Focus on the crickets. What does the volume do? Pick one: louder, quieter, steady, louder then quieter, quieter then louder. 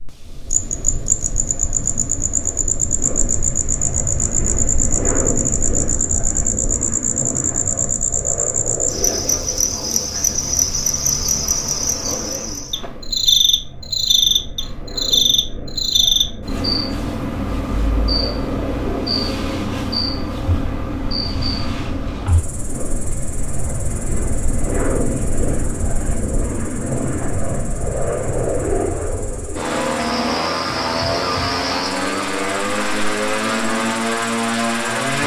quieter.